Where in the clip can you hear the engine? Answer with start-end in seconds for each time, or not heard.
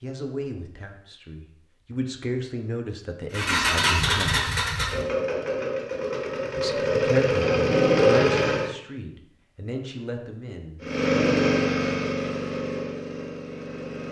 3.3-8.7, 10.8-14.0.